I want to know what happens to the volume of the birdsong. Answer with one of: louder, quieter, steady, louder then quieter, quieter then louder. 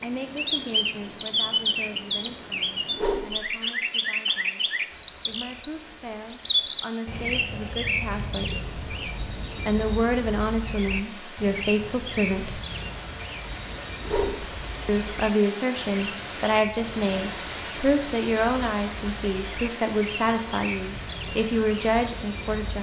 quieter.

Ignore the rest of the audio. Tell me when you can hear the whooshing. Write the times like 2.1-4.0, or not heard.
2.9-3.5, 14.0-14.4.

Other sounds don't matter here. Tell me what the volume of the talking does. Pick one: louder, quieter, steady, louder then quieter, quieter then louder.
louder.